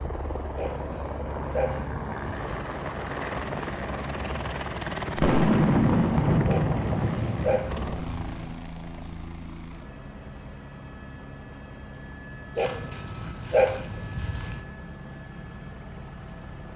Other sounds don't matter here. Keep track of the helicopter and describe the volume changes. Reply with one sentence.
The volume of the helicopter goes down.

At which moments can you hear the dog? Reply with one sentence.
The dog can be heard from 0.6 to 2.5 s, from 6.5 to 8.6 s and from 12.6 to 14.7 s.